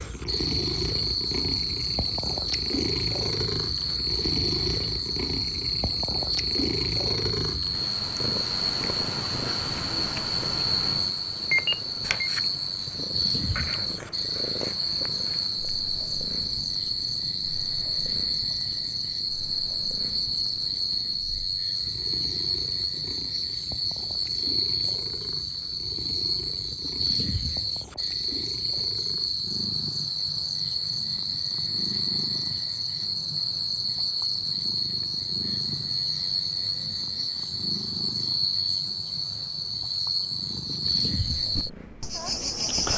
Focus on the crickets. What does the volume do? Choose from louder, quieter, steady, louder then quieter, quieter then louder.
steady.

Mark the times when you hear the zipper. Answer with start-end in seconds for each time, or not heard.
not heard.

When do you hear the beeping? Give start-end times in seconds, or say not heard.
11.5-12.3.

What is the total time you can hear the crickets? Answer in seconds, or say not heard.
43 s.